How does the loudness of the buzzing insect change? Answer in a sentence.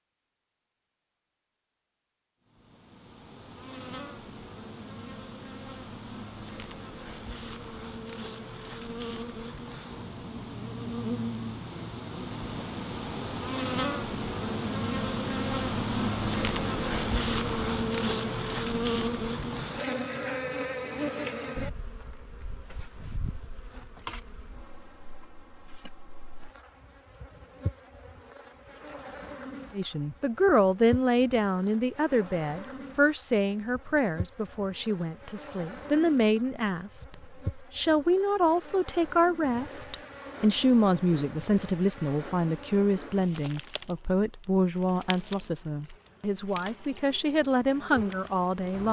The loudness of the buzzing insect goes up, then down.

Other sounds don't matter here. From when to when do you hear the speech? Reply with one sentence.
You can hear the speech from 29.7 to 48.8 s.